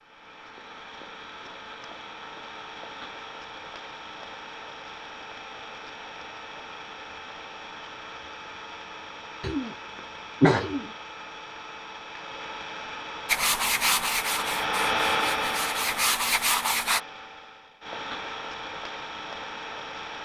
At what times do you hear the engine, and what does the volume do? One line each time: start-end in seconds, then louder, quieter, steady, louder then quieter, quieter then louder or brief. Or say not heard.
0.0-20.2 louder then quieter.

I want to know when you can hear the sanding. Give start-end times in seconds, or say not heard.
13.2-17.0.